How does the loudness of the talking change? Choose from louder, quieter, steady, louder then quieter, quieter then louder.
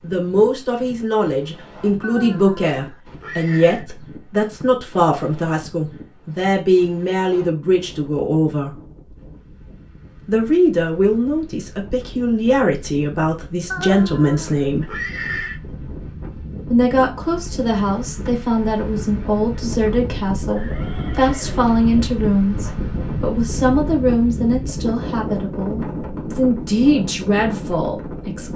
steady.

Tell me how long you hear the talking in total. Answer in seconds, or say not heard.
25 s.